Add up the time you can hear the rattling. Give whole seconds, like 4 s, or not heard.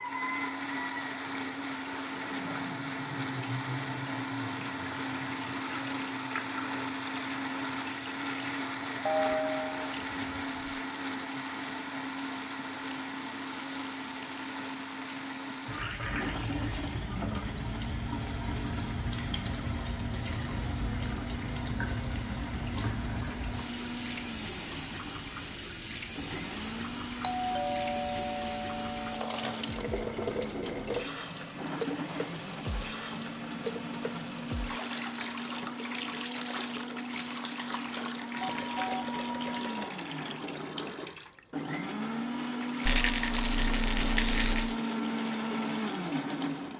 2 s.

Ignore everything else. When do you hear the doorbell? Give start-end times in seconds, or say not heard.
9.1-10.8, 27.4-29.3, 38.3-40.0.